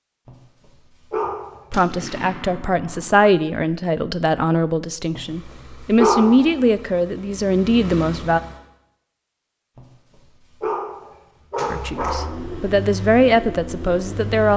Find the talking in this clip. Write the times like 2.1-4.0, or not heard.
1.7-8.4, 11.7-14.5.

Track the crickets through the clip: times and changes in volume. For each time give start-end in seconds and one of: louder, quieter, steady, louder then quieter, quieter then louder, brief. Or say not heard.
not heard.